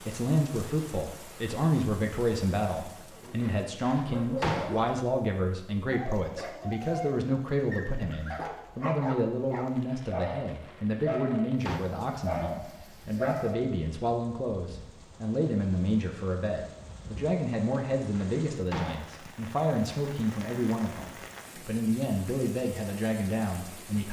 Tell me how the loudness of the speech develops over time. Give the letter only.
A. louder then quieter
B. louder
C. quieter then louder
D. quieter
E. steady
E.